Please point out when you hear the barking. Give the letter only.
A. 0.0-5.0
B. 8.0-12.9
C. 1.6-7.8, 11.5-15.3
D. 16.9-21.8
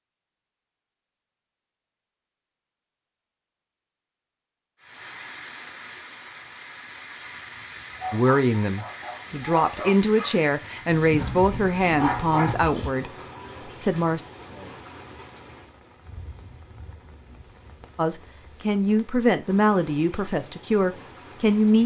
B.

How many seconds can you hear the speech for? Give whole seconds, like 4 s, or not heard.
10 s.